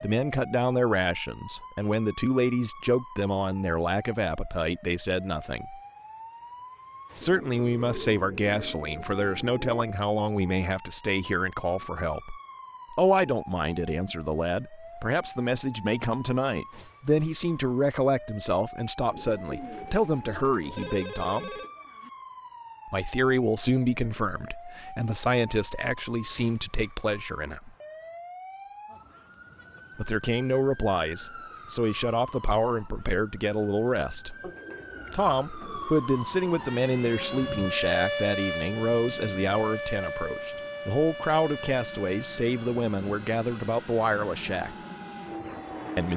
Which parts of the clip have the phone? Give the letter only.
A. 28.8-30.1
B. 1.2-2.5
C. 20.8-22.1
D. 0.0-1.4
C.